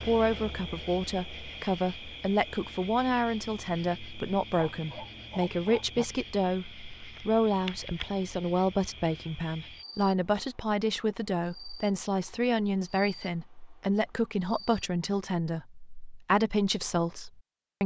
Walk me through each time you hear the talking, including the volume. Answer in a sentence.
You can hear the talking from 0.0 to 17.8 s, at a steady volume.